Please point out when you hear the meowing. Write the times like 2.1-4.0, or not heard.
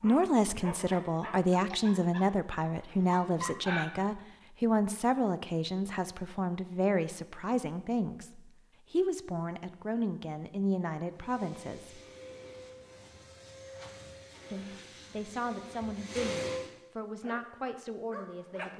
not heard.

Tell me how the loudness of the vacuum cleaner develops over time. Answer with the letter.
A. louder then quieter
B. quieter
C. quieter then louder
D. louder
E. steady
D.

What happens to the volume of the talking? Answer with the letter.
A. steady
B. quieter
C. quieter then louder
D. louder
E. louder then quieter
B.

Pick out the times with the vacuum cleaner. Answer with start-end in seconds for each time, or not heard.
11.1-16.7.